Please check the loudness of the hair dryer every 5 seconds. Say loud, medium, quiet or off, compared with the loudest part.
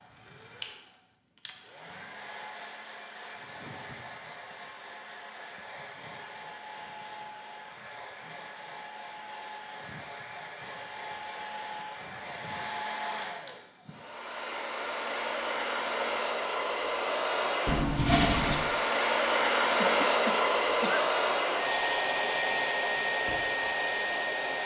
quiet, quiet, medium, loud, loud.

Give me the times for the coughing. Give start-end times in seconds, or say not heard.
19.8-21.1.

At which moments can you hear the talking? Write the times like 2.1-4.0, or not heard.
not heard.